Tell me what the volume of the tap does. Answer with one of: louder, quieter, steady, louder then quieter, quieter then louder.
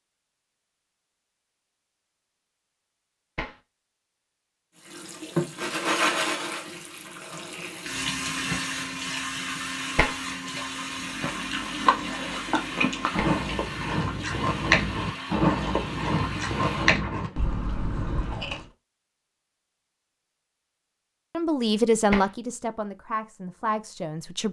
quieter.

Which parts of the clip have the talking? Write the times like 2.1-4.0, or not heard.
21.4-24.4.